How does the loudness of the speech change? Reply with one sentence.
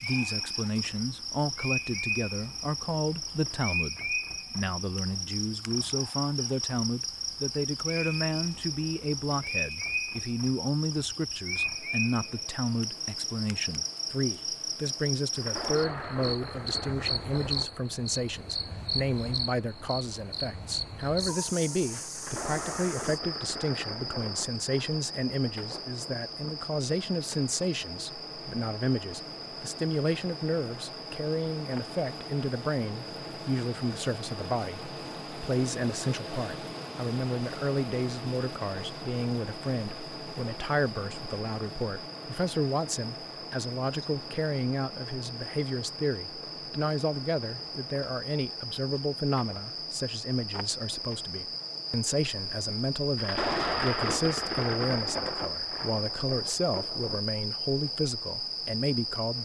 The loudness of the speech stays about the same.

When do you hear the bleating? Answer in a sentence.
You can't hear the bleating here.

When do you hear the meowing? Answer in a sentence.
The meowing can't be heard in this clip.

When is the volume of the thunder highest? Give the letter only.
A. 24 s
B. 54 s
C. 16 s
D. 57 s
B.